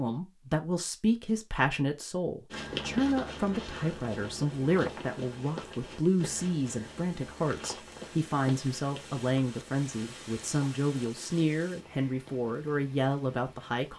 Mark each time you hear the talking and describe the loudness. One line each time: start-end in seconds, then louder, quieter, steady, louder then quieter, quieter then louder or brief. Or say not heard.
0.0-13.9 steady.